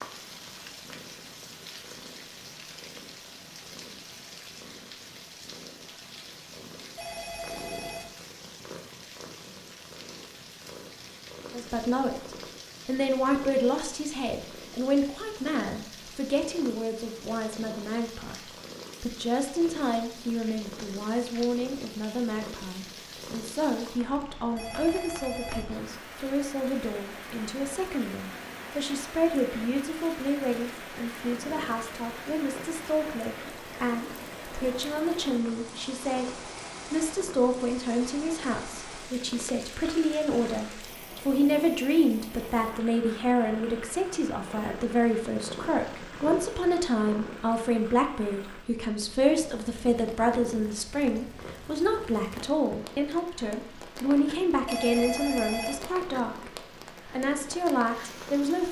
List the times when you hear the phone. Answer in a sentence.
You can hear the phone from 7.0 to 8.2 s, from 24.6 to 25.8 s and from 54.6 to 55.9 s.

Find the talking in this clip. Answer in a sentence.
You can hear the talking from 11.5 to 58.6 s.